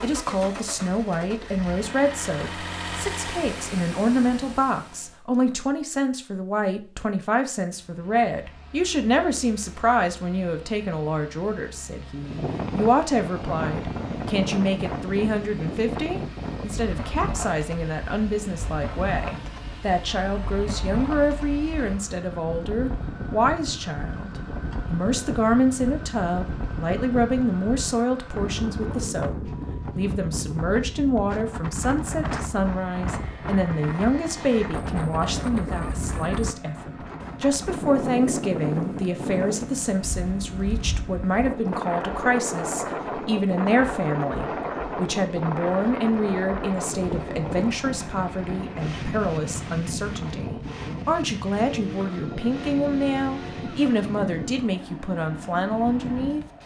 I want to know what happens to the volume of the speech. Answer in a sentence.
The loudness of the speech stays about the same.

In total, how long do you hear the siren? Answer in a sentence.
You can't hear the siren here.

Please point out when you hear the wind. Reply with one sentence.
You can hear the wind from 12.2 to 56.6 s.